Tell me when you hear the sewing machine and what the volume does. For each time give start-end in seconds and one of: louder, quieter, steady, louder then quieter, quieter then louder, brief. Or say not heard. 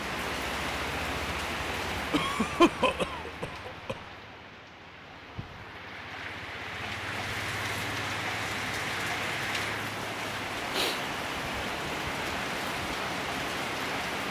not heard.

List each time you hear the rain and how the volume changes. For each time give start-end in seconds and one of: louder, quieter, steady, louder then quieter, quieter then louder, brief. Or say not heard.
0.0-14.2 quieter then louder.